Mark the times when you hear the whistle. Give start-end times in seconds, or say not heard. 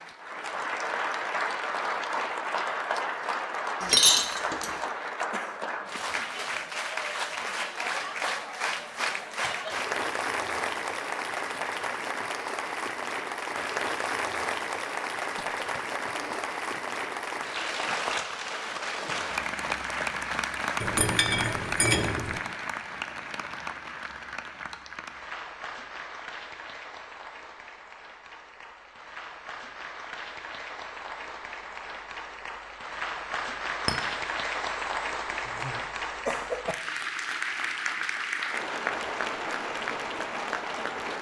not heard.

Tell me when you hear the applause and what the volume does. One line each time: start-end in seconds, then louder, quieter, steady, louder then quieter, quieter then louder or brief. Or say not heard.
0.0-41.1 quieter then louder.